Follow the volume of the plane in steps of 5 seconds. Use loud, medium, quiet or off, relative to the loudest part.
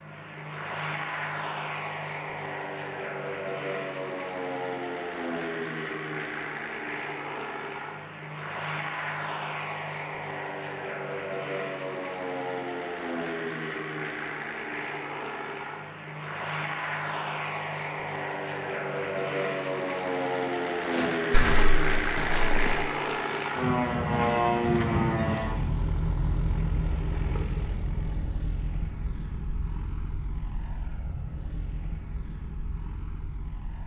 medium, medium, medium, medium, loud, medium, quiet.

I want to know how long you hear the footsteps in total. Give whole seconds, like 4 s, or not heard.
2 s.